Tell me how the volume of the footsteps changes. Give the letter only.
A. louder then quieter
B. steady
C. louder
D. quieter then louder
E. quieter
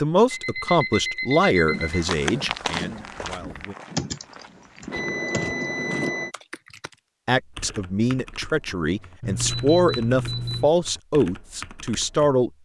E.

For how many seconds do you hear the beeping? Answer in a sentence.
The beeping can be heard for 5 seconds in total.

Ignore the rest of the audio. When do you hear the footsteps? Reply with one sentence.
You can hear the footsteps from 1.7 to 6.1 s.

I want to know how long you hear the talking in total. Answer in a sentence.
You can hear the talking for 9 seconds altogether.